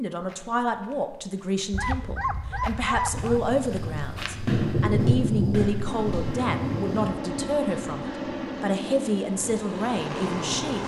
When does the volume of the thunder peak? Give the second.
5 s.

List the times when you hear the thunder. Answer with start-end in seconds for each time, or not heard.
3.1-7.2.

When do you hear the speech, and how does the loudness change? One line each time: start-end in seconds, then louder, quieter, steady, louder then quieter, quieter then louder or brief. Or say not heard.
0.0-10.8 steady.